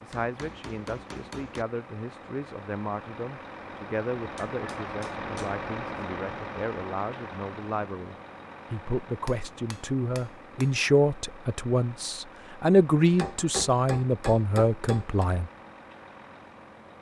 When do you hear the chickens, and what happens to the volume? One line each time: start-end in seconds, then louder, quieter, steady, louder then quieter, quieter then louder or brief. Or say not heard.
not heard.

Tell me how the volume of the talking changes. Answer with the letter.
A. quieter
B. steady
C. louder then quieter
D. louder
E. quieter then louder
D.